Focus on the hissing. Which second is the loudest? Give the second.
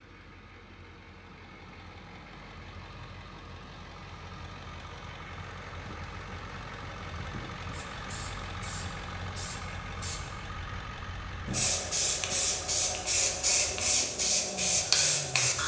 15 s.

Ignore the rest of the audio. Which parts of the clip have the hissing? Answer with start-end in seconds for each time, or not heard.
7.7-15.6.